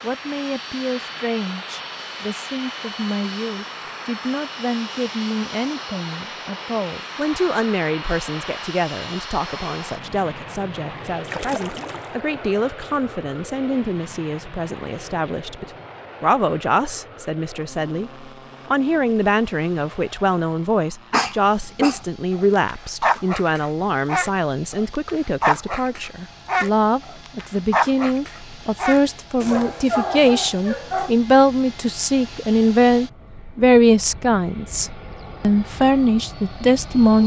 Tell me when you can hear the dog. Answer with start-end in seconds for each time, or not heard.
21.1-31.1.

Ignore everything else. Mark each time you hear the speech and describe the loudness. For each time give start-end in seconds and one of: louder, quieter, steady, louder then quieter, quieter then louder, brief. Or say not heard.
0.0-37.2 louder.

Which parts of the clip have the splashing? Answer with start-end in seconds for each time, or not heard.
11.2-12.2.